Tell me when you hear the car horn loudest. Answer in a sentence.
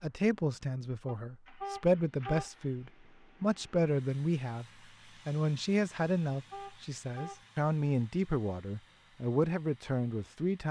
The loudest moment of the car horn is at 2 seconds.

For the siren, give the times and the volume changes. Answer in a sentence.
The siren can't be heard in this clip.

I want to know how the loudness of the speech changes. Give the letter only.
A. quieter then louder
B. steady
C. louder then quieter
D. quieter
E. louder
B.